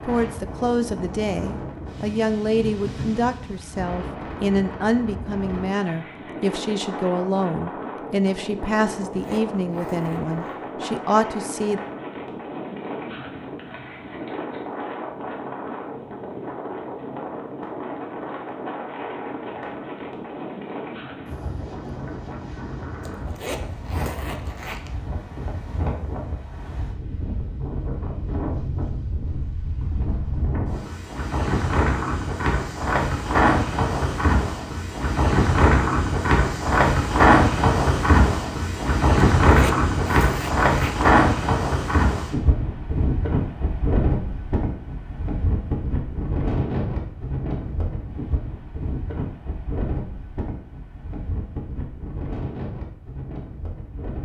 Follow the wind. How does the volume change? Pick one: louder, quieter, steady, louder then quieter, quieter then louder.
louder then quieter.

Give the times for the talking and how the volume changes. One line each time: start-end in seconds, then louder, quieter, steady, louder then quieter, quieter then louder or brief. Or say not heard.
0.1-11.8 steady.